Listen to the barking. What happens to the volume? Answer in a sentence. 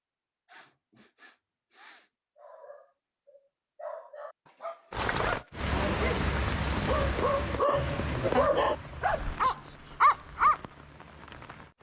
The volume of the barking goes up.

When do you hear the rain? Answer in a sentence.
The rain can be heard from 4.9 to 11.7 s.